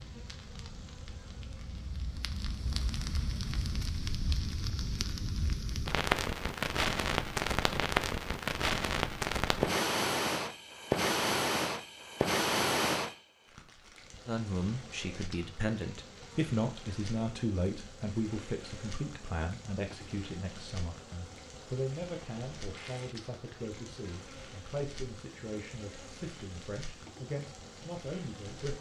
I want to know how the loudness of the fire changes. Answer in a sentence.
The volume of the fire goes up, then down.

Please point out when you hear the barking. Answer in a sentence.
You can't hear the barking here.